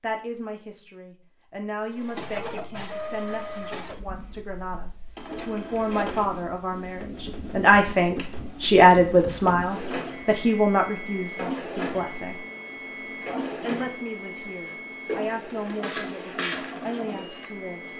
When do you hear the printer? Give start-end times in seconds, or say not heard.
1.9-17.9.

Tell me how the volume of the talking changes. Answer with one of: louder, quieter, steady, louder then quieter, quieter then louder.
louder then quieter.